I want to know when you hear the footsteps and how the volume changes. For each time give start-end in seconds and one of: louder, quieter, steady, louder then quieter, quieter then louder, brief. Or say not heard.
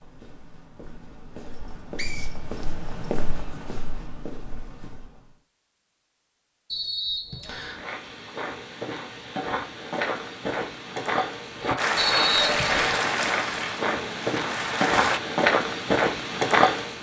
0.0-5.3 louder then quieter
7.5-16.9 louder.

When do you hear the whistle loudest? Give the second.
12 s.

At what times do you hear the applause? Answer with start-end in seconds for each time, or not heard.
11.8-15.2.